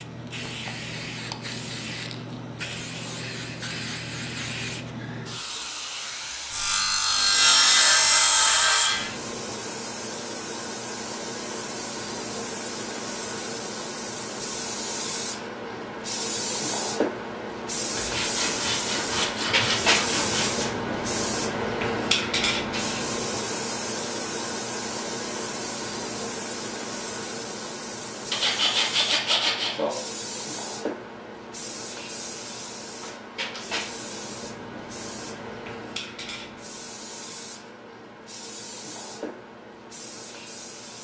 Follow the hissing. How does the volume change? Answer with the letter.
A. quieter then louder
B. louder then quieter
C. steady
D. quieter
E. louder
B.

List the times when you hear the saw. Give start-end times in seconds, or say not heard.
6.5-9.1, 17.9-20.8, 28.3-29.9.